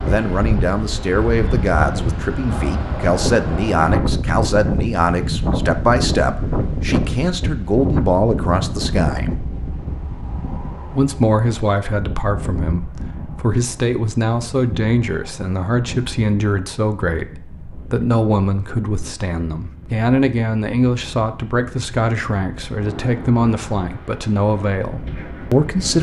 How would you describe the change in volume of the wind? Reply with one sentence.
The volume of the wind goes down.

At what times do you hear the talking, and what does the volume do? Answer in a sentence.
The talking can be heard from 0.0 to 9.3 s, at a steady volume; and from 10.9 to 25.9 s, at a steady volume.